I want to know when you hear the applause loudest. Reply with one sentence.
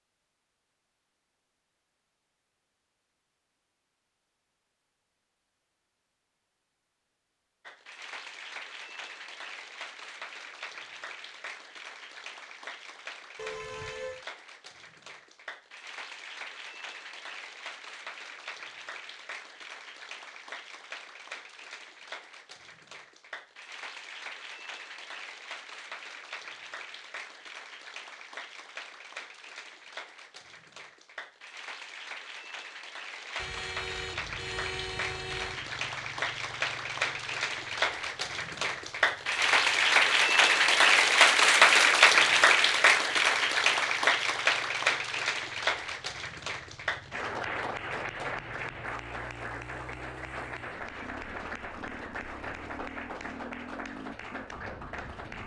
The volume of the applause peaks at 42 seconds.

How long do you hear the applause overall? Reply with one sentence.
The applause can be heard for 48 seconds in total.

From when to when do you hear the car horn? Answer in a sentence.
The car horn can be heard from 13.3 to 14.2 s and from 33.4 to 35.6 s.